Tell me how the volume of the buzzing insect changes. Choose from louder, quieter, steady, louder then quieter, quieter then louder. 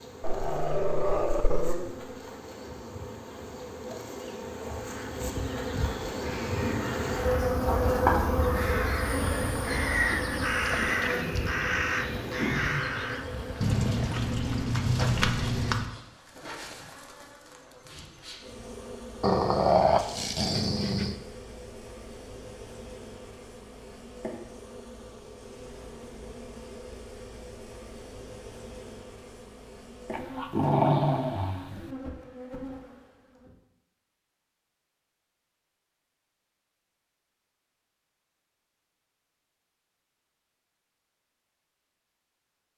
louder then quieter.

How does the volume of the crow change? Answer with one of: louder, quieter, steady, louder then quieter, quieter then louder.
louder.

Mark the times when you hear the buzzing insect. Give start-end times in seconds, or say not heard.
0.0-33.5.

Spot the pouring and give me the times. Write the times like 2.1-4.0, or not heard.
13.6-15.9.